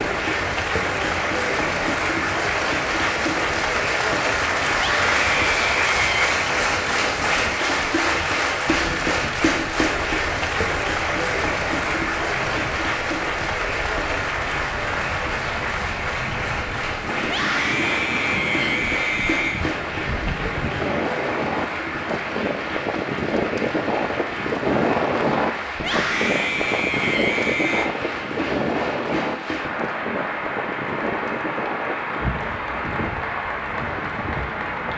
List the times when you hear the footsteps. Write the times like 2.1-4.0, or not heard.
not heard.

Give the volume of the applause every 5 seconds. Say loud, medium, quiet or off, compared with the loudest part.
loud, loud, loud, medium, medium, medium, medium.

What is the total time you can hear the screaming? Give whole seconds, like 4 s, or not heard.
6 s.